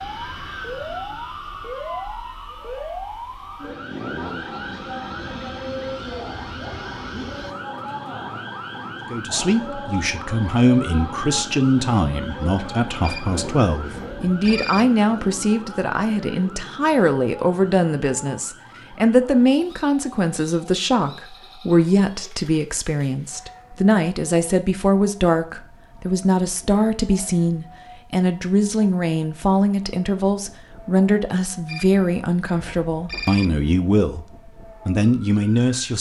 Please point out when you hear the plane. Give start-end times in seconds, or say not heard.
0.0-7.5.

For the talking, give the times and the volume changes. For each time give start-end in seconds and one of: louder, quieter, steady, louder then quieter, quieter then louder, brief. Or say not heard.
9.1-35.9 steady.